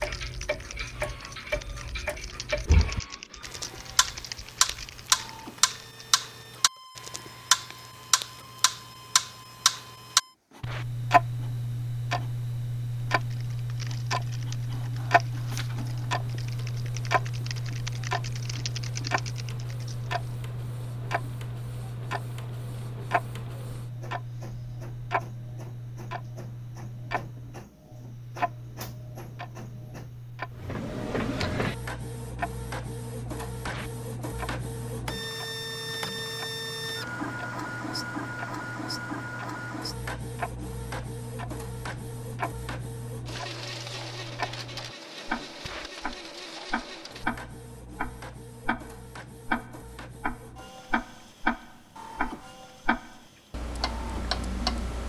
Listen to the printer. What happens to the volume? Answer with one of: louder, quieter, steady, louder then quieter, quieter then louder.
louder then quieter.